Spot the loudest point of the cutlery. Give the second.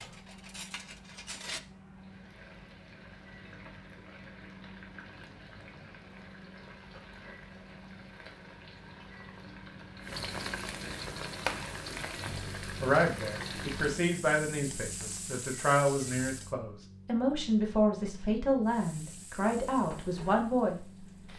1 s.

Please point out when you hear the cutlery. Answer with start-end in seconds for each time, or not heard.
0.0-1.6.